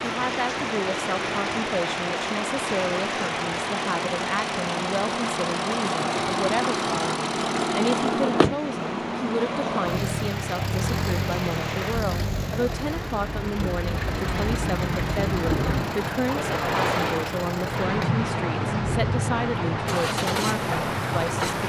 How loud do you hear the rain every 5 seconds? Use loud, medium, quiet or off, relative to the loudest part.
loud, medium, medium, loud, loud.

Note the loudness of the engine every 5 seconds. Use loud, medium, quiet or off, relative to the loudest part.
medium, loud, medium, medium, medium.